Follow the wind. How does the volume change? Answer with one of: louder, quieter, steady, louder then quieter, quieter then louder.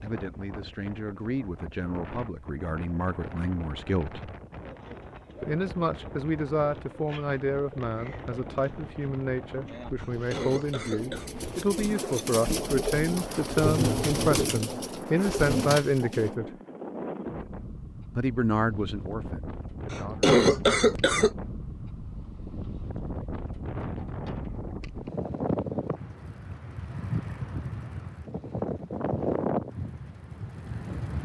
louder.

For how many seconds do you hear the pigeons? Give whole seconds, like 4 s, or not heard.
12 s.